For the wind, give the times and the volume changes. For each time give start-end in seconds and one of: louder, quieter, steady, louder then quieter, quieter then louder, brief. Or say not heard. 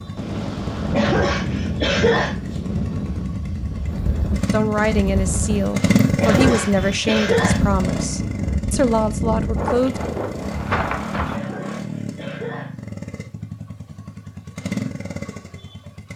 0.0-11.4 steady.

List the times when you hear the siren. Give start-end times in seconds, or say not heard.
not heard.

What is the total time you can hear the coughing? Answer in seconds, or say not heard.
4 s.